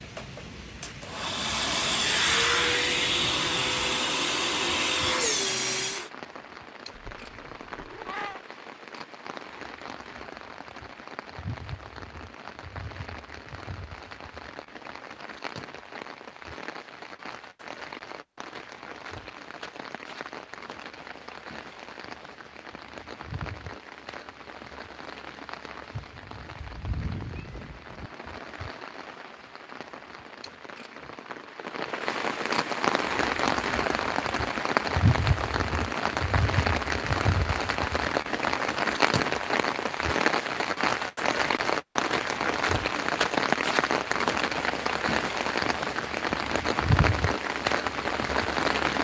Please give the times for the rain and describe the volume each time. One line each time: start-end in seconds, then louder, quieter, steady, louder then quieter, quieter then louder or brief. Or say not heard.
0.0-48.9 louder.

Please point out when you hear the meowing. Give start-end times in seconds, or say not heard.
6.9-8.4, 26.6-28.1.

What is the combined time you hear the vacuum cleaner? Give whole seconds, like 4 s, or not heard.
6 s.